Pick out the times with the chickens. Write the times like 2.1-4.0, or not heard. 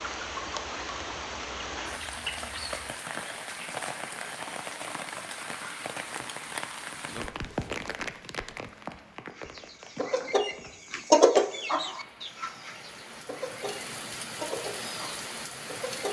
0.0-2.8, 9.3-16.0.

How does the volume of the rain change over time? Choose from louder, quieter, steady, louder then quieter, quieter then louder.
quieter then louder.